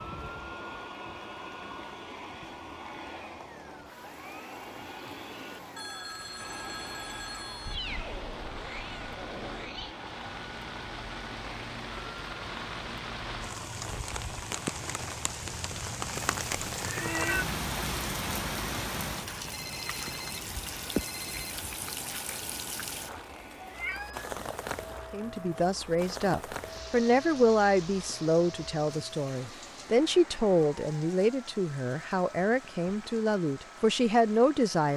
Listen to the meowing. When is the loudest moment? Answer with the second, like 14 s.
17 s.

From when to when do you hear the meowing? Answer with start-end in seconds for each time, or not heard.
7.7-9.9, 16.1-17.4, 23.6-24.3.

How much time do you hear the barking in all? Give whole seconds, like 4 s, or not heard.
not heard.